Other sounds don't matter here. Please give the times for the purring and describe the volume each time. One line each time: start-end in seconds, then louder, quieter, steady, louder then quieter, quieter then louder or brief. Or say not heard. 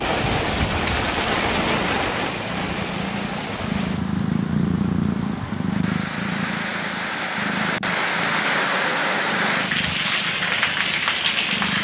0.1-11.7 louder then quieter.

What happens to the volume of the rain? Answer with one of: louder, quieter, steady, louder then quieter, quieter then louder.
quieter then louder.